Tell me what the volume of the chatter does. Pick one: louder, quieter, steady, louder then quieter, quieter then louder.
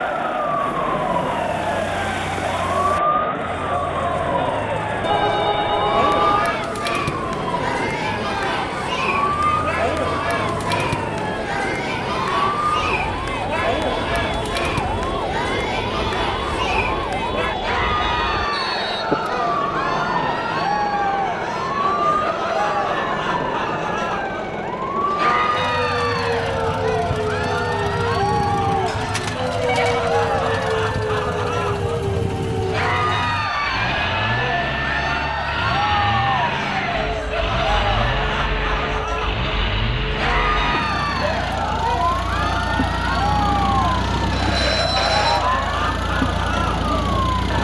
steady.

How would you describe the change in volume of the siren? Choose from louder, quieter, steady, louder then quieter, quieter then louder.
steady.